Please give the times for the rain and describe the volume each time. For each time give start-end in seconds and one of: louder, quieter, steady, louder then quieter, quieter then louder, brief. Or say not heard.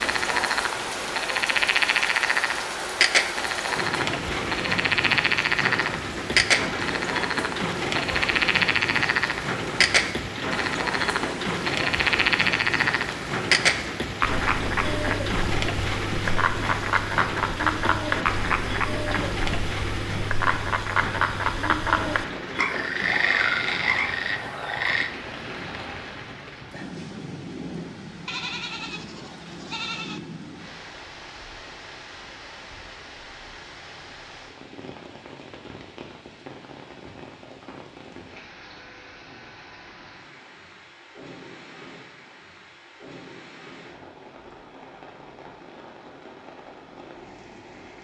0.0-48.0 quieter.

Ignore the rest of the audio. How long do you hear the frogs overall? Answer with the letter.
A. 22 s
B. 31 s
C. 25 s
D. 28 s
C.